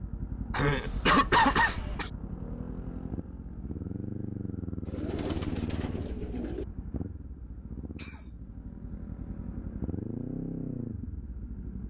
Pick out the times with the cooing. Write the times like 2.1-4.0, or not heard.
4.8-6.7.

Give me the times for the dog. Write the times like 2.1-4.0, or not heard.
not heard.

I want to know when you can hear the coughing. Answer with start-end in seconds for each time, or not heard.
0.5-2.1, 8.0-8.5.